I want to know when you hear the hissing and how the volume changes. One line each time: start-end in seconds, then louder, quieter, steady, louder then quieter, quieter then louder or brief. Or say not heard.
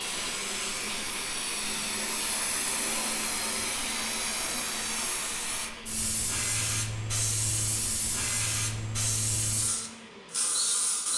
0.0-11.1 steady.